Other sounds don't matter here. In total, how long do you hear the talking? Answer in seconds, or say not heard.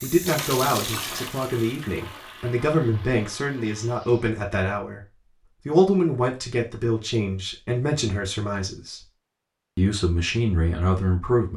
11 s.